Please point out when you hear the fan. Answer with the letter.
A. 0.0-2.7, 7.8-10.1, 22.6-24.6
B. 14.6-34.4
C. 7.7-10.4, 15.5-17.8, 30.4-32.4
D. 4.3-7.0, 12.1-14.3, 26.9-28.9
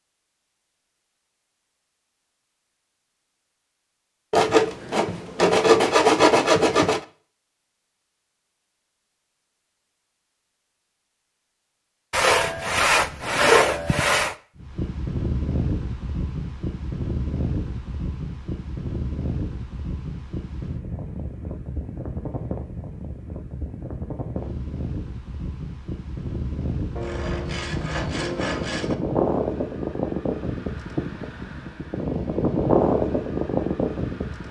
B.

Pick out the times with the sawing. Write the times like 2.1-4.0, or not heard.
4.3-7.0, 12.1-14.3, 26.9-28.9.